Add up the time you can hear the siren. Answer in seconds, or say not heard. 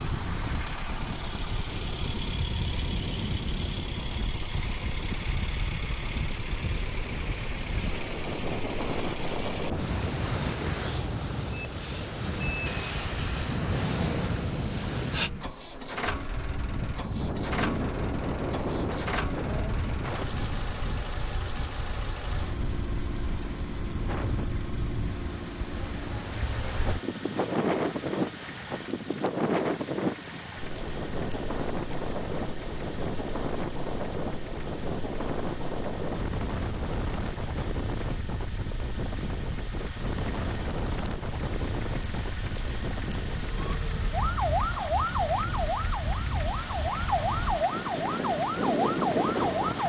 6 s.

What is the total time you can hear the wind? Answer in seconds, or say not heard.
50 s.